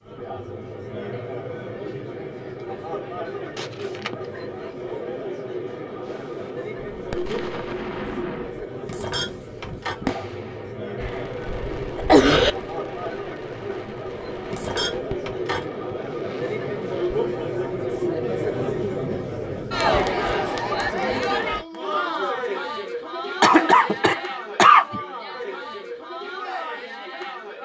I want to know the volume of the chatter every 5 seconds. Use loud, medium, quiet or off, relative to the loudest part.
medium, medium, medium, loud, loud, medium.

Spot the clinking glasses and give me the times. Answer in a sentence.
You can hear the clinking glasses from 8.8 to 9.9 s and from 14.5 to 15.7 s.